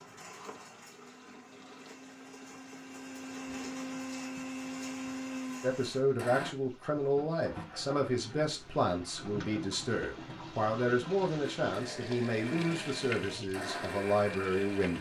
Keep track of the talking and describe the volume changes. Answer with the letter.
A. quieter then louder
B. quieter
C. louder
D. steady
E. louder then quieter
D.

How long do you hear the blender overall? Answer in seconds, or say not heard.
10 s.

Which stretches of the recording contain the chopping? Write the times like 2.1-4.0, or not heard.
not heard.